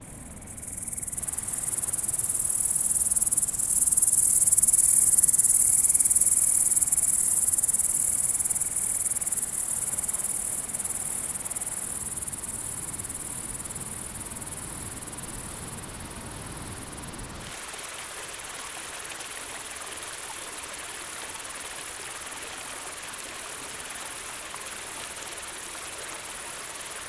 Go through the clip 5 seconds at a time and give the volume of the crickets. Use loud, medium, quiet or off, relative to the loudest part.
loud, loud, medium, quiet, quiet, quiet.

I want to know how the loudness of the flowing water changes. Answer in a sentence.
The volume of the flowing water goes up.